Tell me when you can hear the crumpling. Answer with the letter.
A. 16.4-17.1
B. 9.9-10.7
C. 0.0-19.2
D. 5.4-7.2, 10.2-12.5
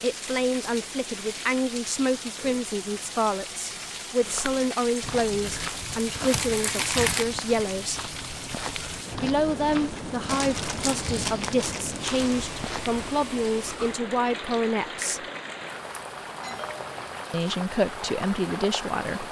D.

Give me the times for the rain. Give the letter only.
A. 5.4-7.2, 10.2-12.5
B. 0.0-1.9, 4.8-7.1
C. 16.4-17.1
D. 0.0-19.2
D.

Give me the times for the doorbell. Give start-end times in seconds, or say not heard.
16.4-17.1.